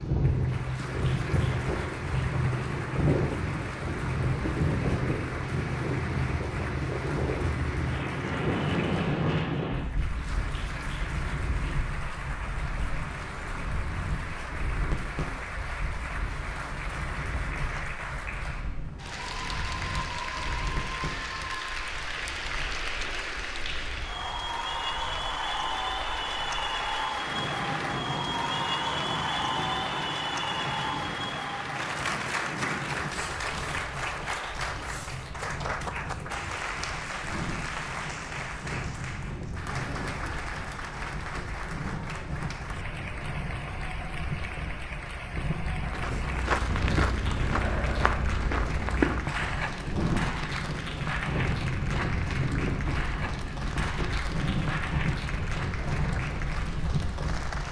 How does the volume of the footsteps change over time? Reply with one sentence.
The loudness of the footsteps goes down.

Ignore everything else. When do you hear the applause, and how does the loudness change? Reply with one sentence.
The applause can be heard from 0.1 to 57.6 s, getting louder then quieter.